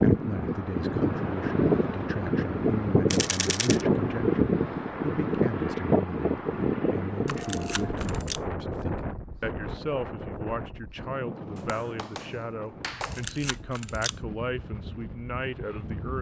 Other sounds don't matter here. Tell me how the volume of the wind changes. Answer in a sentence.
The volume of the wind goes down.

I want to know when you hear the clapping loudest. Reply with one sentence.
The loudest moment of the clapping is at 13 seconds.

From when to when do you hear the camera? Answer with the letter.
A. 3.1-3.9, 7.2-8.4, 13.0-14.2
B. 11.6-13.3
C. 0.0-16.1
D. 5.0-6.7
A.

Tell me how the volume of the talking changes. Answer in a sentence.
The volume of the talking stays about the same.